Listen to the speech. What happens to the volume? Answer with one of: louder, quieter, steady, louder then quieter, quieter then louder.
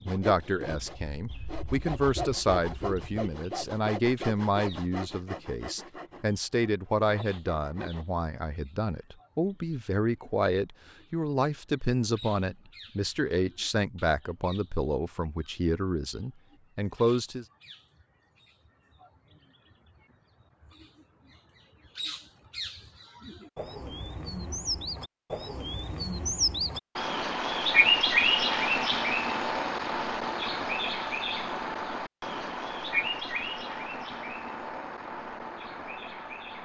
steady.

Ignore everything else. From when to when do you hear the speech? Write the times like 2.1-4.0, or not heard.
0.1-17.4.